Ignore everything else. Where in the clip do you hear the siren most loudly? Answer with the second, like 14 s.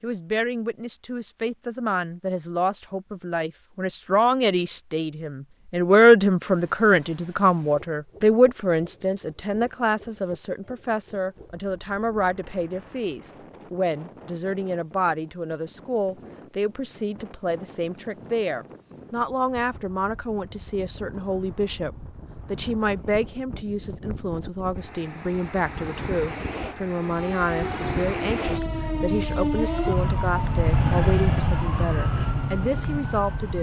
31 s.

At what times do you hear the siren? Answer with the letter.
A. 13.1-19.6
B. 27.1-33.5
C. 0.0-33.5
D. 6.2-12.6
B.